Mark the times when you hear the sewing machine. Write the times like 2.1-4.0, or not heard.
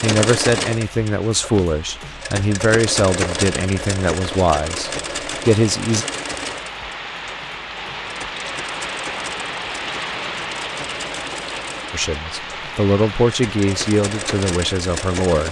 0.0-15.4.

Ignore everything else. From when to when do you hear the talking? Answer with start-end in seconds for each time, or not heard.
0.0-6.0, 11.9-15.4.